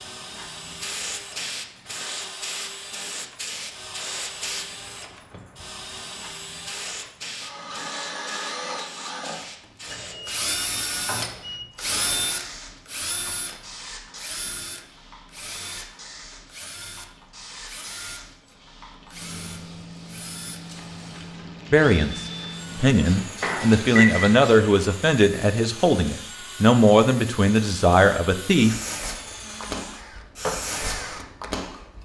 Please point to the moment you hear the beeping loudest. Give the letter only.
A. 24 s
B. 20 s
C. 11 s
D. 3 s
A.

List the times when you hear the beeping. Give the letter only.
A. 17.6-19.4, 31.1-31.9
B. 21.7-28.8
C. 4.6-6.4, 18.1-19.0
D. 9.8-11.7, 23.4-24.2
D.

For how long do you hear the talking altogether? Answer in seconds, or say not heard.
7 s.